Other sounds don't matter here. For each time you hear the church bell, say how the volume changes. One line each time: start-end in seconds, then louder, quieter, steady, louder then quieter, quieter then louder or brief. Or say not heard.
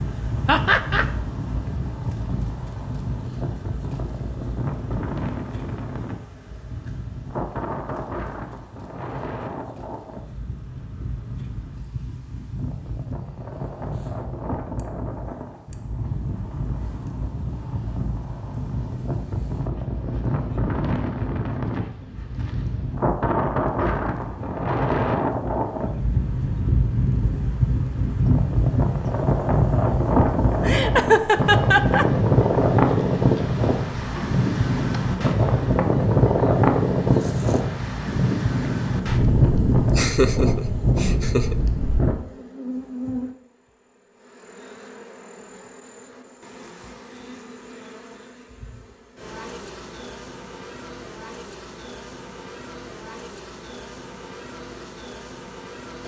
not heard.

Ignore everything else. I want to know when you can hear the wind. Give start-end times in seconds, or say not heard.
0.0-42.1.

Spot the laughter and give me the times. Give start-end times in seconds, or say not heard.
0.5-1.1, 30.6-32.0, 40.0-41.5.